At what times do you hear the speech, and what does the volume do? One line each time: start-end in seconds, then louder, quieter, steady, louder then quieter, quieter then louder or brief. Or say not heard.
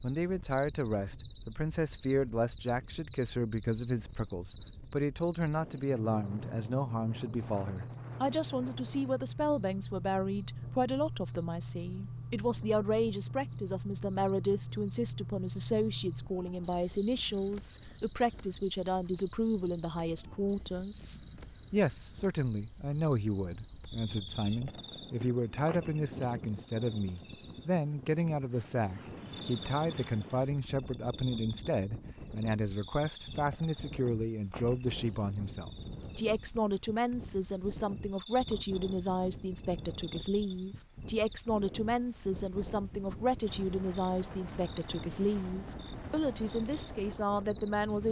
0.0-48.0 steady.